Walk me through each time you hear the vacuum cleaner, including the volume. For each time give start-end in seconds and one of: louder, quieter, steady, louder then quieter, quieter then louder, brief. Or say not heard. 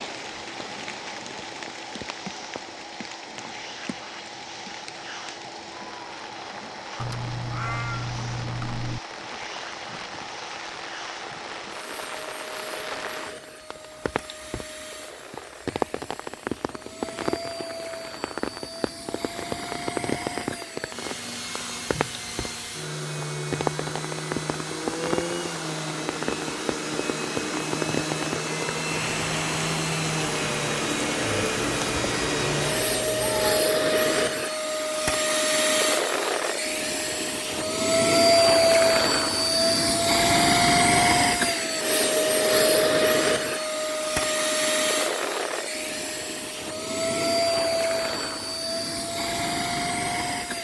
0.0-50.6 louder.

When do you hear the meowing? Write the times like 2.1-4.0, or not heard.
7.0-9.0, 31.6-33.6.